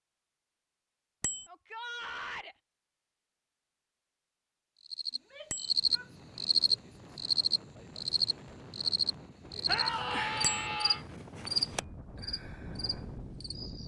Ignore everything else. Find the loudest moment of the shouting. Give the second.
10 s.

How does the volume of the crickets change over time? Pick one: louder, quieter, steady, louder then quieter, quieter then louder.
quieter.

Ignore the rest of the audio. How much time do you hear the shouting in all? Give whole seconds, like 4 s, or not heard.
4 s.